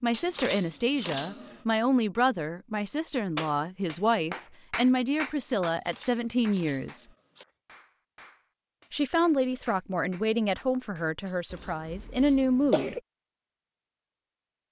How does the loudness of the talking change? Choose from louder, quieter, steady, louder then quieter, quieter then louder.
steady.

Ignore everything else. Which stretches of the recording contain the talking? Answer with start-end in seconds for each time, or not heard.
0.0-7.0, 8.9-12.9.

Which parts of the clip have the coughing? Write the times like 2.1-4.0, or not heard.
11.5-13.0.